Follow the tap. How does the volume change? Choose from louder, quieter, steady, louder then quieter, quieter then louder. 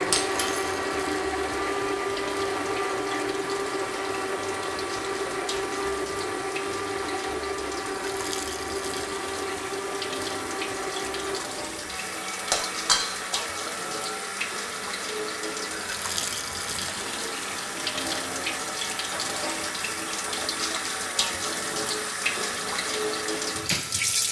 louder.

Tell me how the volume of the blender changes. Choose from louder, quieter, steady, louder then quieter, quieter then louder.
quieter.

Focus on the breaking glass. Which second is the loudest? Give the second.
13 s.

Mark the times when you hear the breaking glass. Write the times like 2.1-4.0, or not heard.
0.1-0.7, 12.5-13.4.